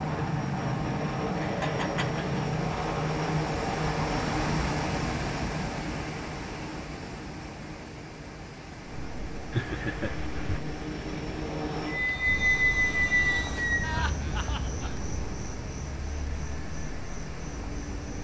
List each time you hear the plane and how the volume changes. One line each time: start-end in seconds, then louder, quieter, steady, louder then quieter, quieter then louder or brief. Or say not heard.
0.0-14.0 quieter then louder.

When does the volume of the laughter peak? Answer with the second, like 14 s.
10 s.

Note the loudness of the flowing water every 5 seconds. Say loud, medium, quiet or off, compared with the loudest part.
loud, loud, medium, medium.